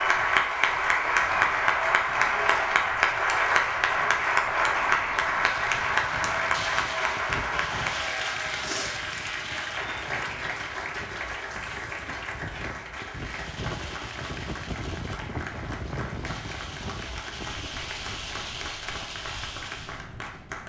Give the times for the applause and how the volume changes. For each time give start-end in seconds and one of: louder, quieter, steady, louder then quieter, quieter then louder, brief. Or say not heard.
0.0-20.6 quieter.